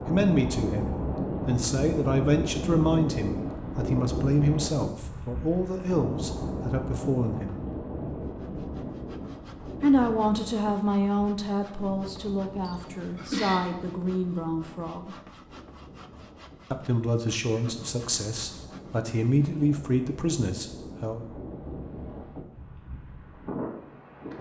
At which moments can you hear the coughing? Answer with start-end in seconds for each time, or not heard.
12.7-13.7.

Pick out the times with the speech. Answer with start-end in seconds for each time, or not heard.
0.0-7.6, 9.8-15.2, 16.7-21.2.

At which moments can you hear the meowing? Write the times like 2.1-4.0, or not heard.
not heard.